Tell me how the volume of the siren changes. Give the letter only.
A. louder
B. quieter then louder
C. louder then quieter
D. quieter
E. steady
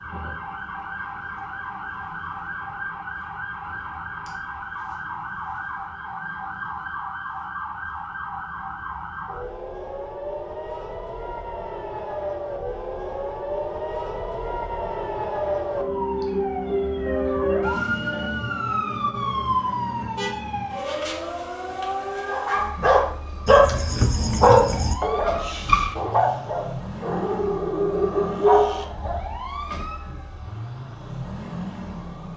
C.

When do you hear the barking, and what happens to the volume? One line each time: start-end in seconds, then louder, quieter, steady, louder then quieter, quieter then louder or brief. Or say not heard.
22.3-29.4 quieter then louder.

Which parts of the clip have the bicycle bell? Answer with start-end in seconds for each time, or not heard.
not heard.